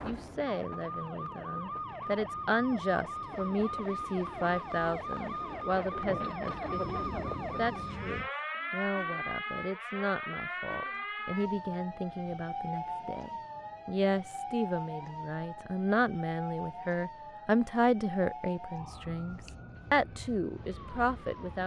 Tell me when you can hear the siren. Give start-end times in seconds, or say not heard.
0.0-21.6.